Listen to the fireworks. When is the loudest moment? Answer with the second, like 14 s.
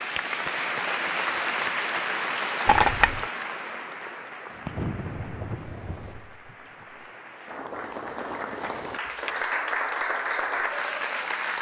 5 s.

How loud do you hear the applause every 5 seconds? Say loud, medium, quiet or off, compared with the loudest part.
loud, medium, loud.